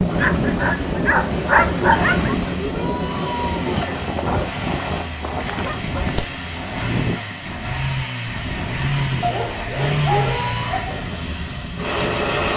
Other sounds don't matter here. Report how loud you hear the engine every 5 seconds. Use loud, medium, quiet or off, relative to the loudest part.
medium, loud, loud.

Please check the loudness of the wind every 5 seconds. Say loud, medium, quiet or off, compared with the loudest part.
loud, medium, medium.